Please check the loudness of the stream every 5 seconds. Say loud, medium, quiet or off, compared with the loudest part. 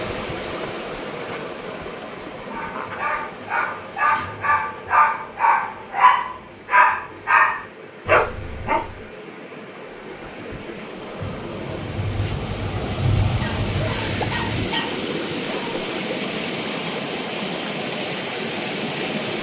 medium, quiet, loud, loud.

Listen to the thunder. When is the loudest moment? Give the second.
13 s.